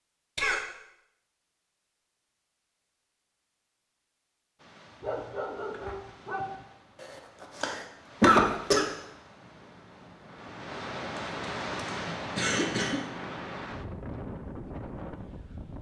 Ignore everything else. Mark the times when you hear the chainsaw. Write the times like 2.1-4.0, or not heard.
not heard.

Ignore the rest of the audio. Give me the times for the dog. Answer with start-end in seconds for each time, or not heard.
5.0-6.7.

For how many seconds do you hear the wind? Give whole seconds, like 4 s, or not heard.
11 s.